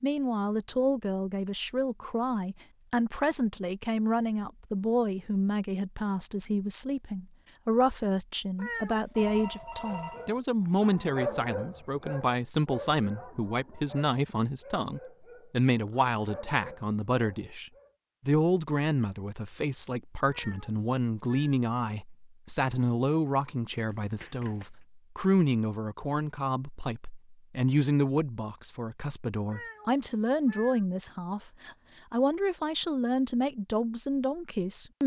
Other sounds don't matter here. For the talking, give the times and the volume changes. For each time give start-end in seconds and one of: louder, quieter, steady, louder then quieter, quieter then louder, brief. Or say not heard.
0.0-35.0 steady.